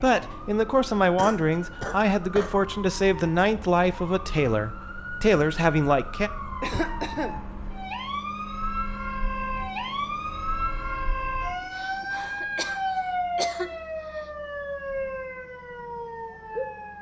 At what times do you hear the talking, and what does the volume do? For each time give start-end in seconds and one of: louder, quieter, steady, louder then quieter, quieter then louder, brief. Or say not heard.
0.0-6.3 steady.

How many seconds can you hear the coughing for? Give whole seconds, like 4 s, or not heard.
5 s.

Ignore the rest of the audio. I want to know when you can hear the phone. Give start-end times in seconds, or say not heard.
not heard.